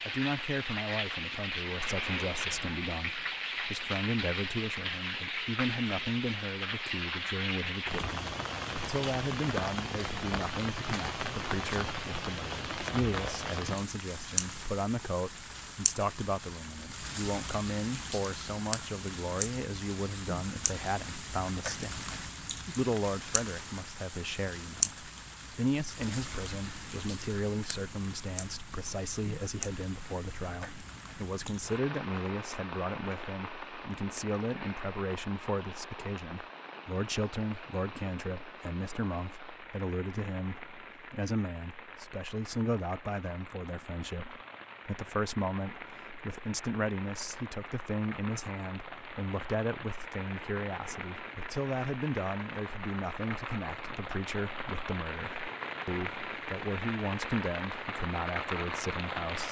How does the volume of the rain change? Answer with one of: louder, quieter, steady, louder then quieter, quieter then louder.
quieter then louder.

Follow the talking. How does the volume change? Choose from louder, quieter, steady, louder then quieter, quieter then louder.
steady.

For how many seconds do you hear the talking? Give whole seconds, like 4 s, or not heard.
59 s.